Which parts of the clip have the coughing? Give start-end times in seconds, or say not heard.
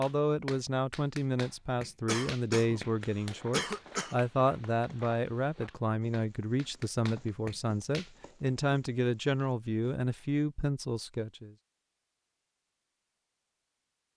2.0-4.2.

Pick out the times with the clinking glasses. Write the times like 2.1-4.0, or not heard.
not heard.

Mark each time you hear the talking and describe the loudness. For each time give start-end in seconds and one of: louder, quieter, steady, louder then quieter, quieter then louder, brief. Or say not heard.
0.0-11.6 steady.